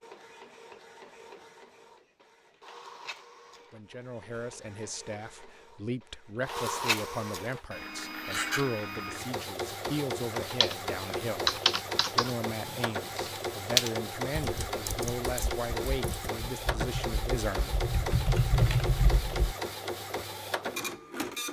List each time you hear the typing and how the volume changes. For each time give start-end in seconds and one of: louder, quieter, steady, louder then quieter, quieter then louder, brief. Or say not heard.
10.4-19.6 quieter then louder.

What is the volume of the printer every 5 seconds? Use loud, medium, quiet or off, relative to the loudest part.
quiet, loud, loud, loud, loud.